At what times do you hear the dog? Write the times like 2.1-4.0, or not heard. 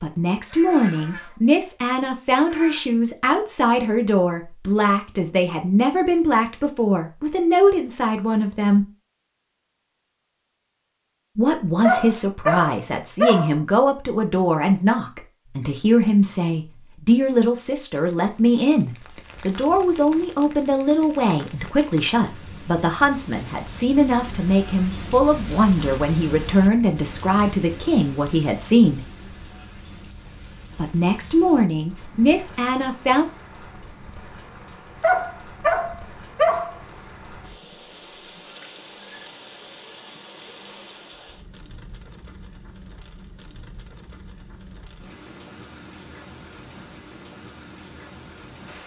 11.8-13.6, 35.0-36.8.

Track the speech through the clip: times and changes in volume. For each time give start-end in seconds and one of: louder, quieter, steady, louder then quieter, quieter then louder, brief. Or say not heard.
0.0-8.8 steady
11.3-29.1 steady
30.8-33.2 brief.